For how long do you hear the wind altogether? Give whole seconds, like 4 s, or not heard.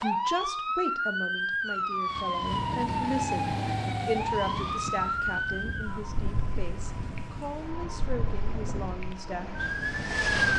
8 s.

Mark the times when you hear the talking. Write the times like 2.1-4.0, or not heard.
0.0-9.7.